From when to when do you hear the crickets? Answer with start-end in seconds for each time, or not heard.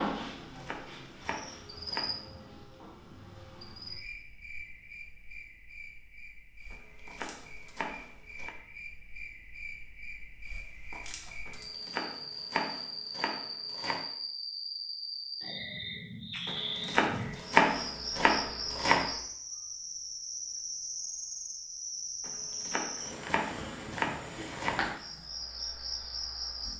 0.0-26.7.